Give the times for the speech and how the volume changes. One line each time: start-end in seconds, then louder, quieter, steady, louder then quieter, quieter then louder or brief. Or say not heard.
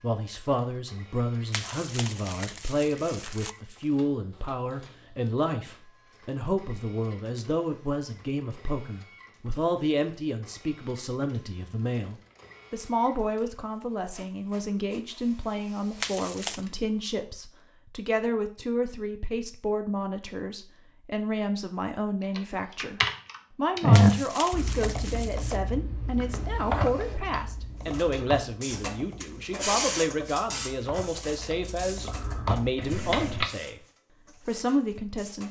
0.0-33.8 steady
34.5-35.4 brief.